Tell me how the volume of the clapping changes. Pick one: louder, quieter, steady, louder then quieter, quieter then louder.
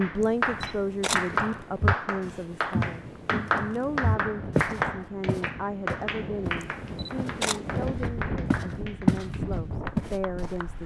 quieter.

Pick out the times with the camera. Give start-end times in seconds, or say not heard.
0.2-1.4, 6.6-7.6.